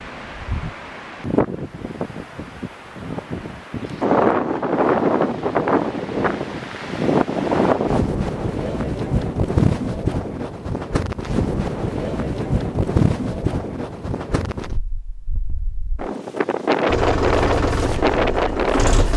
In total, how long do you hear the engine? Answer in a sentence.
You can hear the engine for 2 seconds altogether.